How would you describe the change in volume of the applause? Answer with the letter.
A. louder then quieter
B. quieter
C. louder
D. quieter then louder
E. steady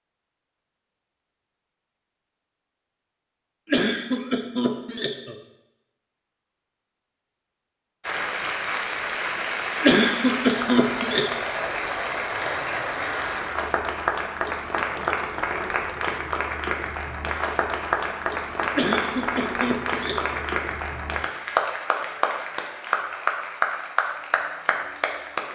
E.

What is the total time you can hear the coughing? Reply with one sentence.
You can hear the coughing for 5 seconds altogether.